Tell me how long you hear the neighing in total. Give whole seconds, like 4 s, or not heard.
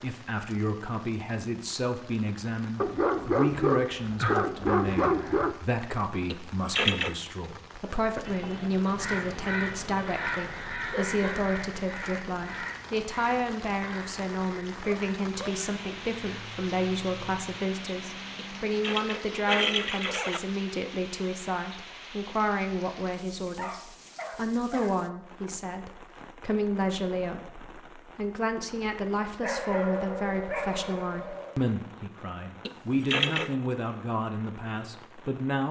4 s.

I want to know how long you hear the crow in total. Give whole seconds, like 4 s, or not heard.
11 s.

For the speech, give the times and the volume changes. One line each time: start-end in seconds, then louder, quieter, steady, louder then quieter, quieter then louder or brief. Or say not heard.
0.0-35.6 steady.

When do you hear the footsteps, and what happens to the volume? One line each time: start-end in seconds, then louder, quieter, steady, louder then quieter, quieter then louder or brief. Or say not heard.
not heard.